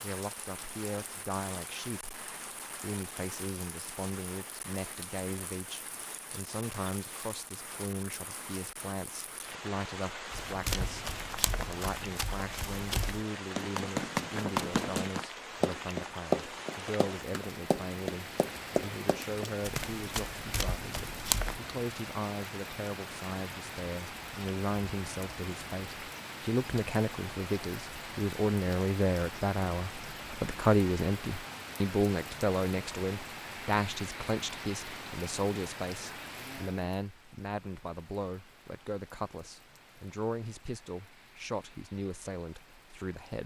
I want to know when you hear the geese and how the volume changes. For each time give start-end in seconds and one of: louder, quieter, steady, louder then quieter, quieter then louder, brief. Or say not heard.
not heard.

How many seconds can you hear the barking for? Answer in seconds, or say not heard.
not heard.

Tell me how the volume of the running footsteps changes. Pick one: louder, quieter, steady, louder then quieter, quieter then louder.
louder then quieter.